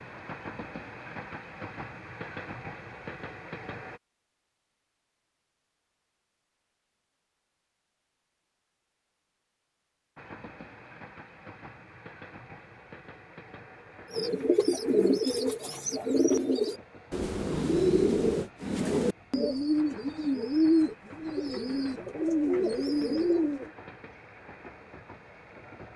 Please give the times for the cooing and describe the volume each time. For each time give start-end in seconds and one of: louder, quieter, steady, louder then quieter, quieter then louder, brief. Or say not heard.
14.1-23.7 steady.